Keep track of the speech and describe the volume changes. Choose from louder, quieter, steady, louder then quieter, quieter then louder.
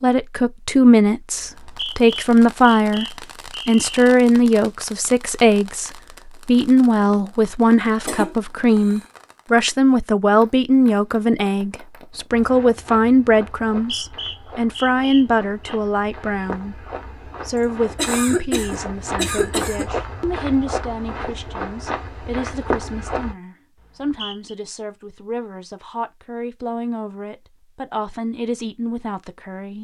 quieter.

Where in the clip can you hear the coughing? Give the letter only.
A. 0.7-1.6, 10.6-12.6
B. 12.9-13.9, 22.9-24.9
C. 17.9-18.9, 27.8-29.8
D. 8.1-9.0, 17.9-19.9
D.